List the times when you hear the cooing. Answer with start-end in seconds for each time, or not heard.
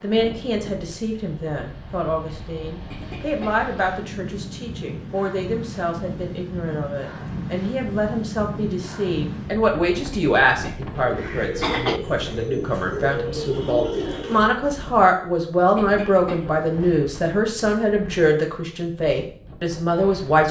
11.0-14.4.